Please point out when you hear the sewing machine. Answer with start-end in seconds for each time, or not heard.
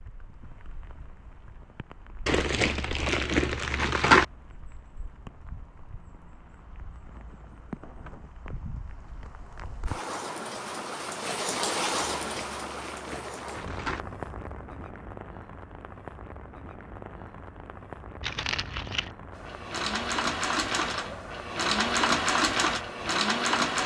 19.3-23.8.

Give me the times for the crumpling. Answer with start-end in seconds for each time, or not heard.
2.2-4.2, 12.2-14.0, 18.2-19.1.